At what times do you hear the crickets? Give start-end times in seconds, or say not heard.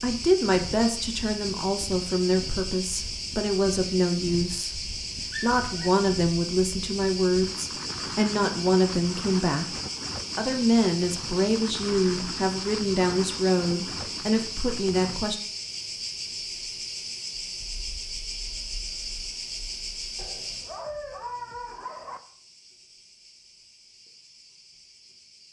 0.0-25.4.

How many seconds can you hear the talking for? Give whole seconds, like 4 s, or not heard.
15 s.